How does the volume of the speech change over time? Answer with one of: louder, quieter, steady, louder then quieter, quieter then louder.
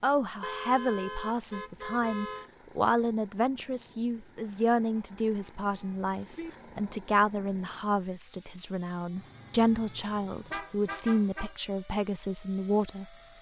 steady.